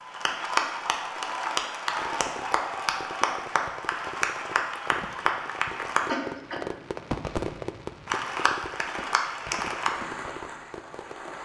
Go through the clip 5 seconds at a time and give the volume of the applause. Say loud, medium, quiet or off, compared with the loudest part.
loud, loud, medium.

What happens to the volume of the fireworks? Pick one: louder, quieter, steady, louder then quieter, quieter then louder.
louder then quieter.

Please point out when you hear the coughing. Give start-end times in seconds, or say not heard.
5.7-6.8.